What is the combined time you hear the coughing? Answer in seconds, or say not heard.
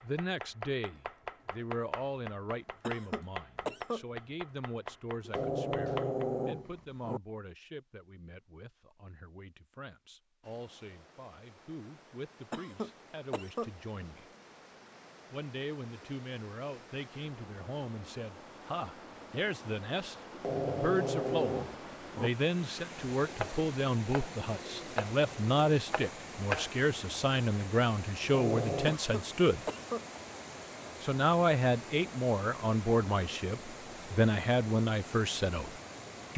4 s.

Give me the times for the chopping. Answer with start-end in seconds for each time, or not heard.
0.0-6.2, 23.4-26.8.